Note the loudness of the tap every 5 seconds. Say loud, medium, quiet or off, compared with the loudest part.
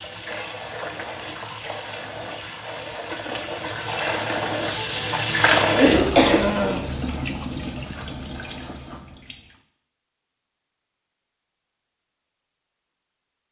medium, loud, off.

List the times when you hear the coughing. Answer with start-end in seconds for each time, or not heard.
5.8-6.4.